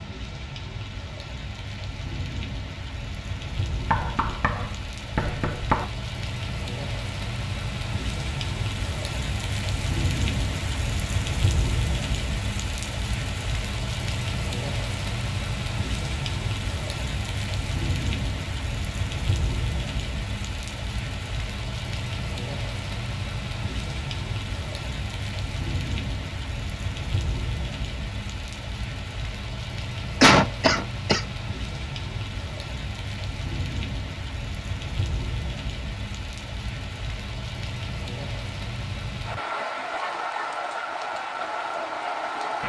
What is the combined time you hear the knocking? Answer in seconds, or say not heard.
2 s.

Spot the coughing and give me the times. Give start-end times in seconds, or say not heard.
30.2-31.2.